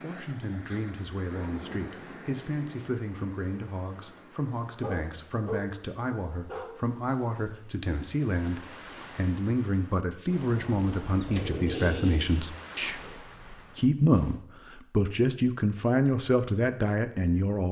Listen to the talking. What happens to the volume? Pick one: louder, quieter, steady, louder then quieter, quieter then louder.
louder.